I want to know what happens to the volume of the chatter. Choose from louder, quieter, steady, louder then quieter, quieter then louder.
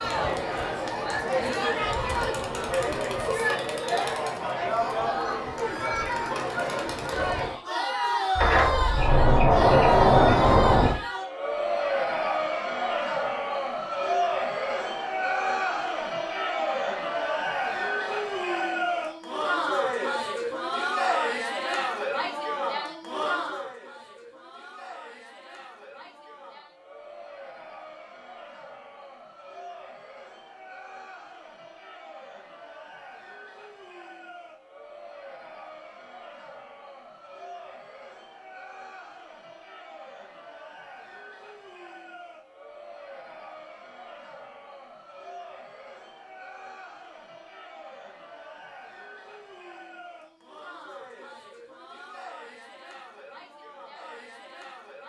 quieter.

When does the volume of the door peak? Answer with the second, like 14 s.
10 s.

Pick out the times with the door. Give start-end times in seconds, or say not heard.
8.3-10.9.